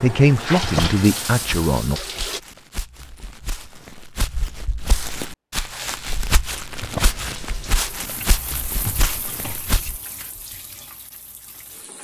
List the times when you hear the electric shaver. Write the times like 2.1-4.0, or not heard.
not heard.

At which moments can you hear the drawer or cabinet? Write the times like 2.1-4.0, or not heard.
0.6-1.6, 6.8-7.8.